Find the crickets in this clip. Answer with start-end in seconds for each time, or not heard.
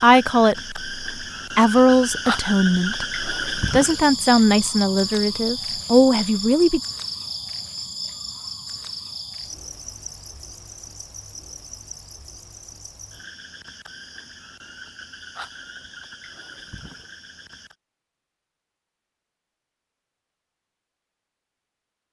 0.0-17.8.